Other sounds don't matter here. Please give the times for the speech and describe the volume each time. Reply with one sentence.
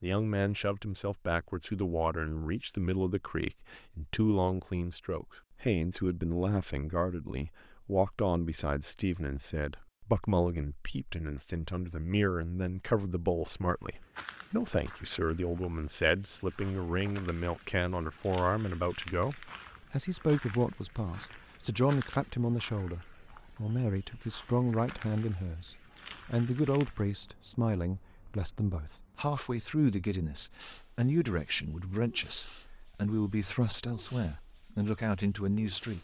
You can hear the speech from 0.0 to 36.0 s, at a steady volume.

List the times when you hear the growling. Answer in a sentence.
The growling can't be heard in this clip.